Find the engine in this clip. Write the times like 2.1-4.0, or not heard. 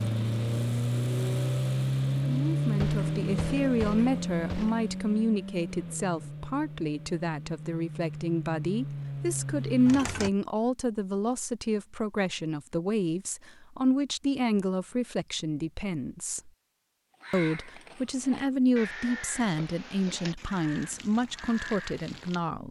0.0-10.3.